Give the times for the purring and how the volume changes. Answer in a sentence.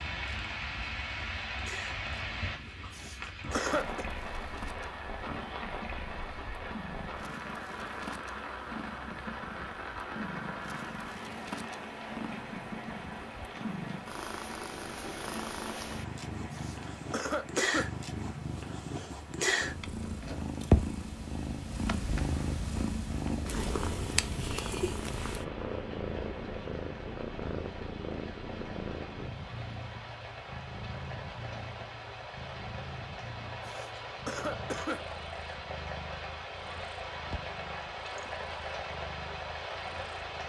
The purring can be heard from 0.0 to 40.4 s, getting louder then quieter.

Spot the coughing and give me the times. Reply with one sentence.
You can hear the coughing from 2.9 to 4.0 s, from 16.5 to 17.9 s and from 33.6 to 35.0 s.